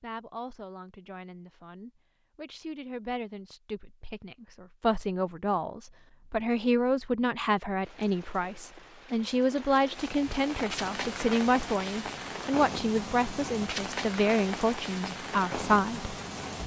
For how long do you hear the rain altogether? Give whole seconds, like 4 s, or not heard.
9 s.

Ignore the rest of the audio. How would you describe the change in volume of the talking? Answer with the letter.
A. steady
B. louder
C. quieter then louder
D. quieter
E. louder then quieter
B.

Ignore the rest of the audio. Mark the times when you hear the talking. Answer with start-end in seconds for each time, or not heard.
0.0-16.1.